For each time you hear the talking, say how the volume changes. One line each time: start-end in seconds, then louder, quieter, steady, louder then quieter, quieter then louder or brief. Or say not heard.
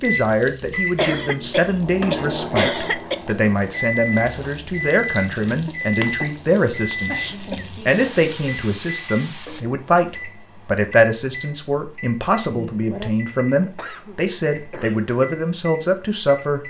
0.0-16.6 steady.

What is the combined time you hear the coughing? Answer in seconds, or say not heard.
6 s.